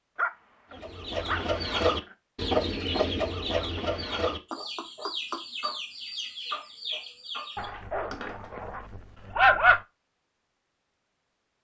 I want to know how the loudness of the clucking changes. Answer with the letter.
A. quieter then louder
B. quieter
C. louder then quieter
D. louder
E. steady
B.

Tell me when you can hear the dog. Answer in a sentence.
The dog can be heard from 0.1 to 2.1 s and from 7.5 to 9.8 s.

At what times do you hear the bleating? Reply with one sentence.
You can't hear the bleating here.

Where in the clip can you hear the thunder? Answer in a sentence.
The thunder can't be heard in this clip.